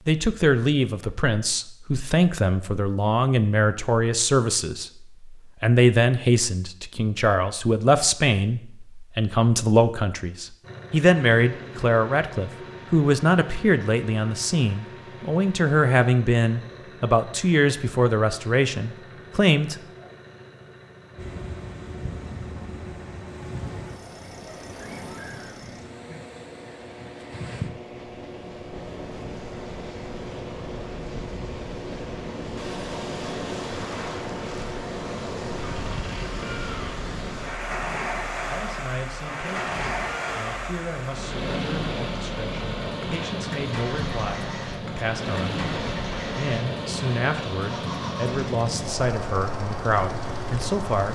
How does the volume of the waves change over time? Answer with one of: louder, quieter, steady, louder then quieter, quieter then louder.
louder.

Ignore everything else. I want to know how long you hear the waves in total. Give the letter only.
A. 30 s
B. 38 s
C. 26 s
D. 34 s
A.